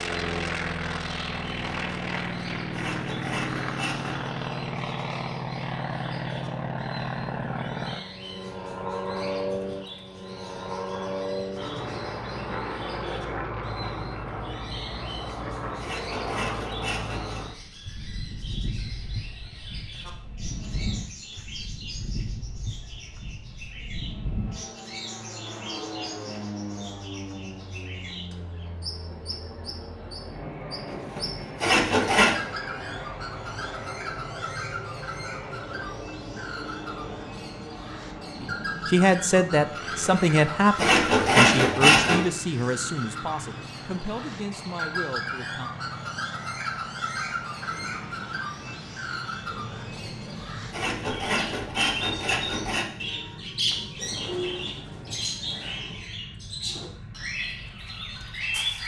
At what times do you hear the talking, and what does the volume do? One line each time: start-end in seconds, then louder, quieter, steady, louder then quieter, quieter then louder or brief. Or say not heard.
38.4-45.7 quieter.